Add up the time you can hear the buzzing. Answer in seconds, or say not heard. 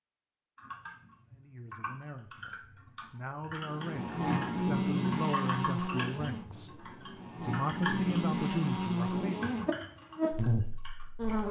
8 s.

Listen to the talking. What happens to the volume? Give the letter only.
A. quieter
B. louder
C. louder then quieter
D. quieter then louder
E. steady
B.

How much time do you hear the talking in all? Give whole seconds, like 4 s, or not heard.
8 s.